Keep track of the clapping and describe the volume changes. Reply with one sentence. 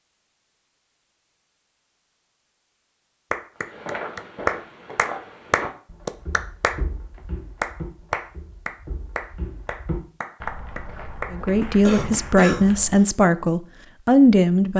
The loudness of the clapping goes down.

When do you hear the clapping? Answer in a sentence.
You can hear the clapping from 3.3 to 6.8 s and from 7.6 to 12.4 s.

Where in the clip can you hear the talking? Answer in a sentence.
The talking can be heard from 11.3 to 14.7 s.